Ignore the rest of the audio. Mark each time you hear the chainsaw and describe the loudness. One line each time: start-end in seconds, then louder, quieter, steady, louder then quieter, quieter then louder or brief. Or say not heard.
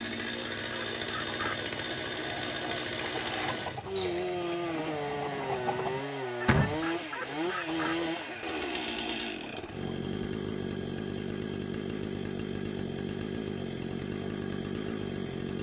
0.0-15.5 steady.